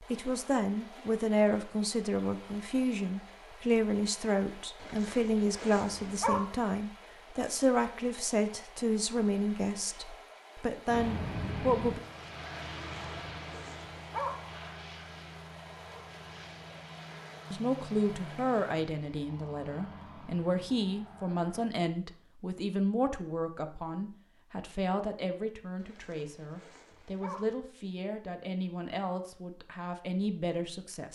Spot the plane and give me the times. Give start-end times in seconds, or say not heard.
10.8-21.7.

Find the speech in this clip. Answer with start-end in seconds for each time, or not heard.
0.0-12.0, 17.5-31.1.